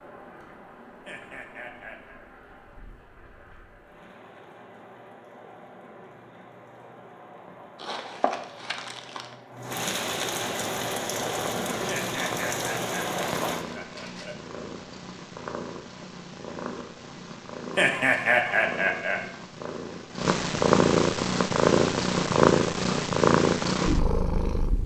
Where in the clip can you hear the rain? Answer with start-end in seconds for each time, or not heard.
0.0-13.7.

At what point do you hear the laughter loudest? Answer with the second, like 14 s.
18 s.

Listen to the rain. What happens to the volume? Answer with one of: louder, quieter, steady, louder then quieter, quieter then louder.
louder.